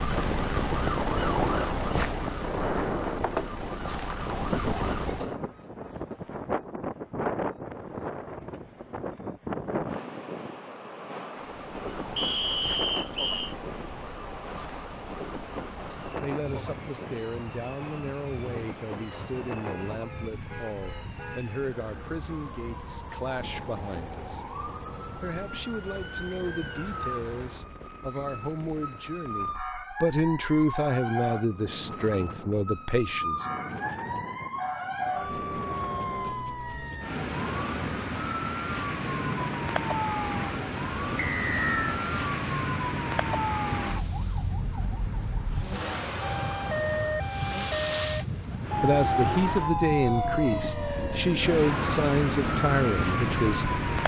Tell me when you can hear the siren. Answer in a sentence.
You can hear the siren from 0.0 to 5.3 s and from 11.4 to 54.0 s.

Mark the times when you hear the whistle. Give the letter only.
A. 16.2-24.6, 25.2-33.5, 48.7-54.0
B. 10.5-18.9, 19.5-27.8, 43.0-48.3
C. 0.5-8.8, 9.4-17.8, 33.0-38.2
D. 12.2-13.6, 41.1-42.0
D.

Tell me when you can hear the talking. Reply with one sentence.
The talking can be heard from 16.2 to 24.6 s, from 25.2 to 33.5 s and from 48.7 to 54.0 s.